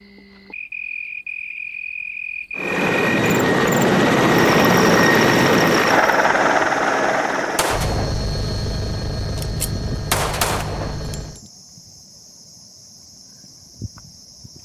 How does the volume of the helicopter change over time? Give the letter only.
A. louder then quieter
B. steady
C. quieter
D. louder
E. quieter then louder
C.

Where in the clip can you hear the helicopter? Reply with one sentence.
The helicopter can be heard from 2.5 to 11.4 s.